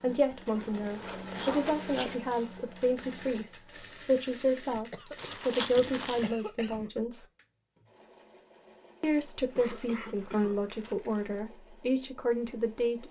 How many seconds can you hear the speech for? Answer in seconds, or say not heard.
11 s.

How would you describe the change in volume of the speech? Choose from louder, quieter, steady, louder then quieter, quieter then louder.
steady.